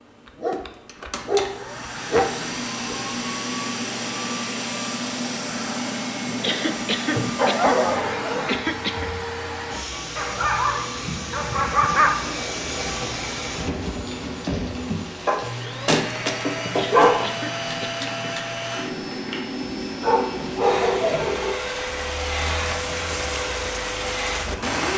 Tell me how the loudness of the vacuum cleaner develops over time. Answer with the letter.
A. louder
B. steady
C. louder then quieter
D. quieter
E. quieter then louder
B.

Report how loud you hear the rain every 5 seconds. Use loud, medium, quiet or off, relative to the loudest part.
off, off, medium, medium, loud.